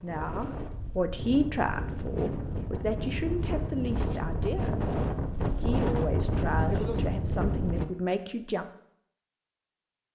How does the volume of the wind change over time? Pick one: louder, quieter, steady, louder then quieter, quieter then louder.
louder.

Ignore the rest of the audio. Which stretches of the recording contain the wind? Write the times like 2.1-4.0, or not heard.
0.0-7.8.